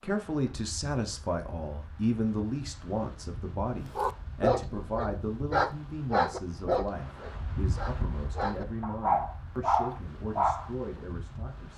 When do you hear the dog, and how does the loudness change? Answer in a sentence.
You can hear the dog from 4.0 to 10.7 s, getting quieter then louder.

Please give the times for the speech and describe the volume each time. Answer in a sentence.
The speech can be heard from 0.0 to 11.7 s, getting quieter.